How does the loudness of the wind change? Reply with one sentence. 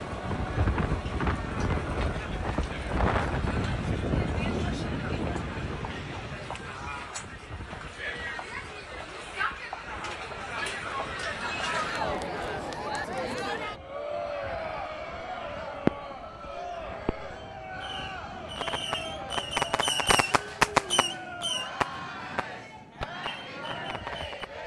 The loudness of the wind goes down.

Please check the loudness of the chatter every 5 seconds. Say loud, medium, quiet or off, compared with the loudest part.
medium, medium, loud, medium, medium.